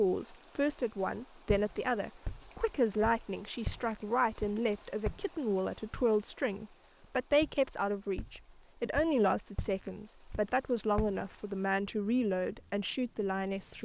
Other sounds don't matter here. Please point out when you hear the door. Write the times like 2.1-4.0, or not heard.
not heard.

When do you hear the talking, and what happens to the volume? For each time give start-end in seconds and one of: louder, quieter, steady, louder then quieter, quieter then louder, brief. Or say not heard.
0.0-13.7 steady.